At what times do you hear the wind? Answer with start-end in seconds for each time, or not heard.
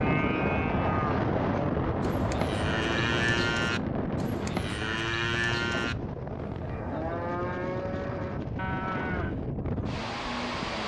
0.0-10.8.